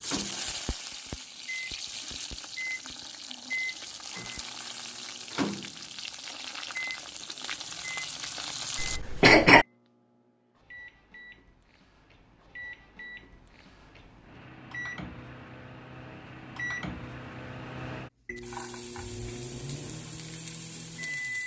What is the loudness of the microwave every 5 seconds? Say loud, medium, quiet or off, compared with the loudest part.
loud, loud, medium, loud, loud.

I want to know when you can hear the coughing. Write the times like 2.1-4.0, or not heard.
8.8-9.7.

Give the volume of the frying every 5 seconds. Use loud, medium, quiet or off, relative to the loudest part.
loud, loud, off, medium, medium.